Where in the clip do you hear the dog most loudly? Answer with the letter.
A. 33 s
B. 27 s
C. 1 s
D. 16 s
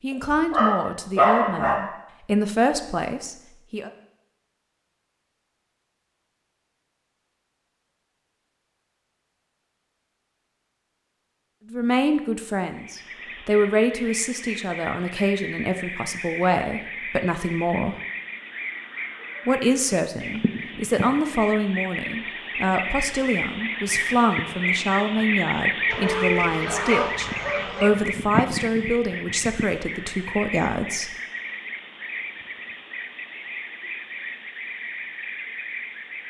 C.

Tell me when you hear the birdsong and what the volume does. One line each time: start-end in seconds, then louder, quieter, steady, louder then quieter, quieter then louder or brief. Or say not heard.
12.7-36.2 louder then quieter.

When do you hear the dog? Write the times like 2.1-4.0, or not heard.
0.1-1.8, 25.9-27.9.